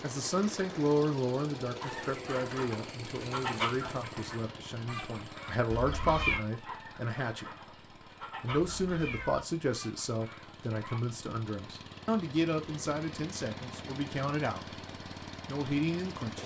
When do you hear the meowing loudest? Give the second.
6 s.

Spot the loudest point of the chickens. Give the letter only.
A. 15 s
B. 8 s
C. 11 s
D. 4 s
D.